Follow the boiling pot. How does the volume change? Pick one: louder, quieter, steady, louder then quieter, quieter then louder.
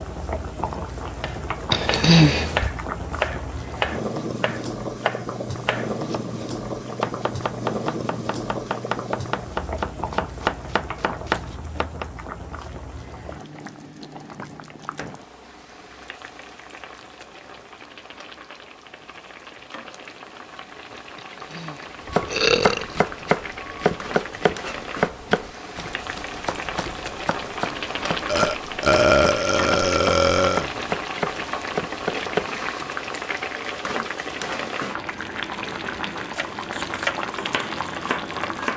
quieter then louder.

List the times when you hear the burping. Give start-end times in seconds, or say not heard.
1.7-2.7, 21.6-22.9, 28.2-30.7.